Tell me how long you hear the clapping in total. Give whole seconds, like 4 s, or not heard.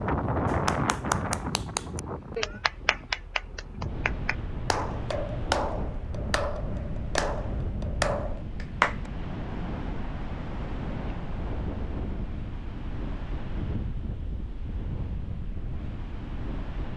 9 s.